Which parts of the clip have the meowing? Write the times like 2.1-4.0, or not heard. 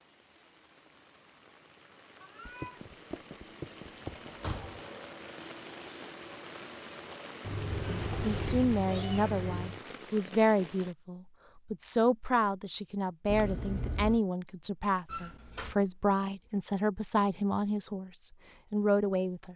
2.2-4.4, 7.4-9.8, 13.2-14.2.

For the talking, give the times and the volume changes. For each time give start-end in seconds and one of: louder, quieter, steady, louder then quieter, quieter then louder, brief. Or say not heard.
8.2-19.5 steady.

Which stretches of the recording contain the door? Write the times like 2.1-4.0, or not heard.
4.2-4.9, 7.5-8.7, 15.1-15.8.